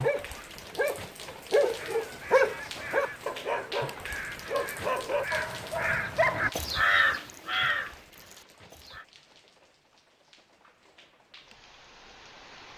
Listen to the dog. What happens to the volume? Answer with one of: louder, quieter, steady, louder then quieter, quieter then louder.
louder then quieter.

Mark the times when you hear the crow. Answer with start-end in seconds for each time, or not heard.
1.8-9.1.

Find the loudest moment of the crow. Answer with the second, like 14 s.
7 s.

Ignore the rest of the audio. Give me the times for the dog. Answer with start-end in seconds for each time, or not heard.
0.0-6.5.